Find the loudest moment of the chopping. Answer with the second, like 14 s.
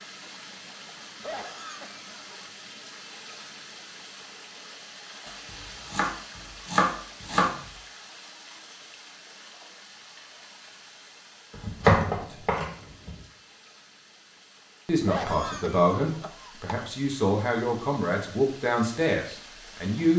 12 s.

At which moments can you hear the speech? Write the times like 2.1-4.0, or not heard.
14.8-20.1.